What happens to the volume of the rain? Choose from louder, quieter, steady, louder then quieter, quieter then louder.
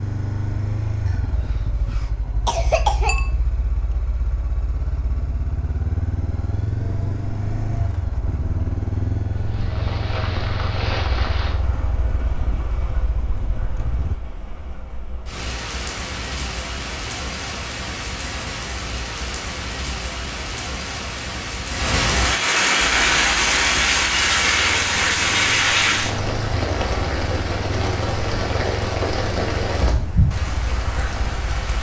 louder then quieter.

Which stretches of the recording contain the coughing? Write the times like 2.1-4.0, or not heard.
1.9-3.3.